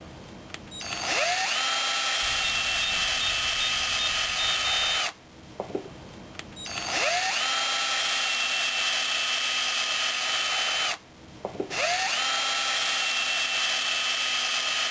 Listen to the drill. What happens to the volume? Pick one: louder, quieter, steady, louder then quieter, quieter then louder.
steady.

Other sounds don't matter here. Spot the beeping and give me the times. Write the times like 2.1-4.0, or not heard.
2.2-5.0.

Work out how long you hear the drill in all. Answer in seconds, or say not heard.
15 s.